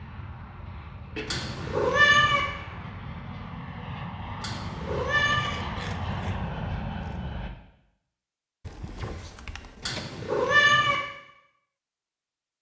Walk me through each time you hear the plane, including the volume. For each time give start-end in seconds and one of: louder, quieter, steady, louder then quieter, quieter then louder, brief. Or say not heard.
0.0-7.5 louder.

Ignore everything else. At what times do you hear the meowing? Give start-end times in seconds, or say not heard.
1.2-2.4, 4.4-5.5, 9.8-10.9.